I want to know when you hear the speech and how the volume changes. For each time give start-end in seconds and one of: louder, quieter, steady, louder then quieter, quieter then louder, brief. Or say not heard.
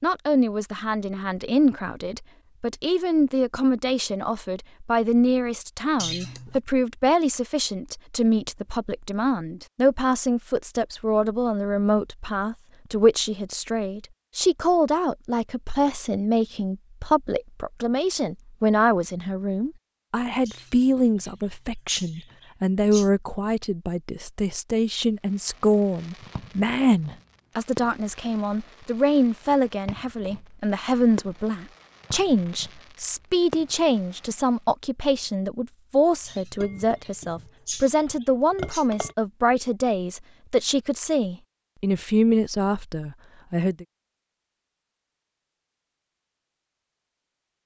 0.0-43.9 steady.